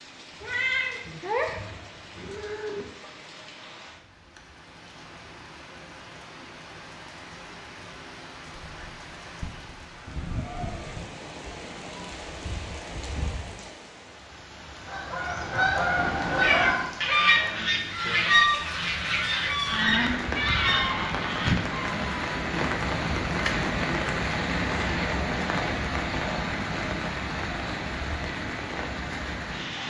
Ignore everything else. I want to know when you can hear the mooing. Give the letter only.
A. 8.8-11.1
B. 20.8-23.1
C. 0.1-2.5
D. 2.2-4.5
A.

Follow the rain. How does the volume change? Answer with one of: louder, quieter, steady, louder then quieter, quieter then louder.
louder.